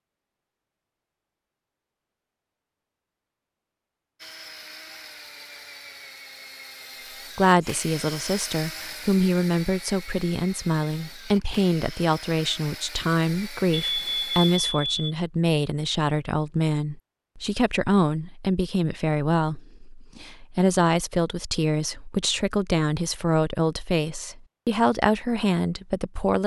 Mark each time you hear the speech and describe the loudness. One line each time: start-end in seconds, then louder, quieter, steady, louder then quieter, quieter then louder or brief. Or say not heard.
7.3-26.4 steady.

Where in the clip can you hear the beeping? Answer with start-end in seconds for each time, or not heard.
13.7-15.2.